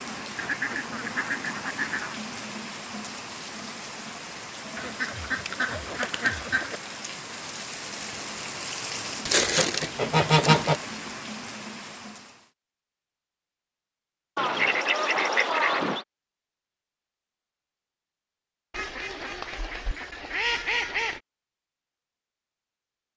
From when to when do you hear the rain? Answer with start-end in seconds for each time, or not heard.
0.0-12.5.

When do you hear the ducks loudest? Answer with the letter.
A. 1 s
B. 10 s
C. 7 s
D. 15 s
B.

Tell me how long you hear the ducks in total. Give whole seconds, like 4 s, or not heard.
10 s.